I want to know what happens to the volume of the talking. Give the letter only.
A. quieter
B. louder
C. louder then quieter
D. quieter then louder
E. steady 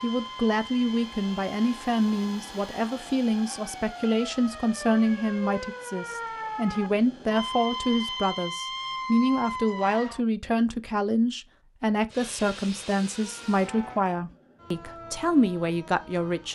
E.